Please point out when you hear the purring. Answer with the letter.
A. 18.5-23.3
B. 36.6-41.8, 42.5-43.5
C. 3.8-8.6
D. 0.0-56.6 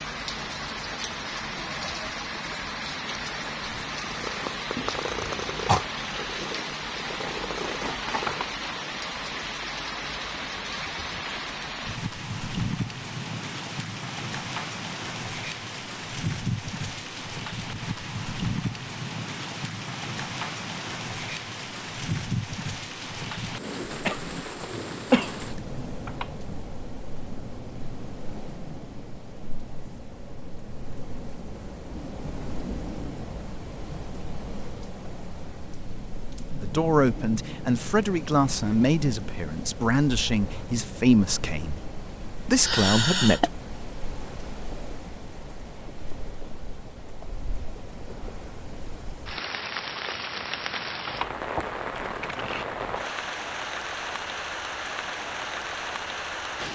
C.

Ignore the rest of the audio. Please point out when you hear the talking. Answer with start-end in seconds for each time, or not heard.
36.6-41.8, 42.5-43.5.